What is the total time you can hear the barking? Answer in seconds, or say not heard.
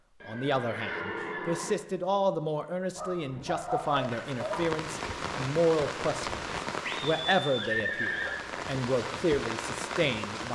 2 s.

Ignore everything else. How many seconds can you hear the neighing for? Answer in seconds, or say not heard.
3 s.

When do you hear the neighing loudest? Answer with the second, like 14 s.
8 s.